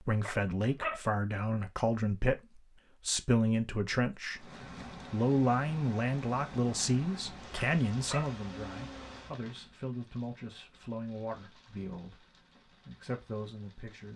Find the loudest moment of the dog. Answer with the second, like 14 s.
1 s.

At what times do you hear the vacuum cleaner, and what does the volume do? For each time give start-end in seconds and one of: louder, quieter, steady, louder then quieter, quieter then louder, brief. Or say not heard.
not heard.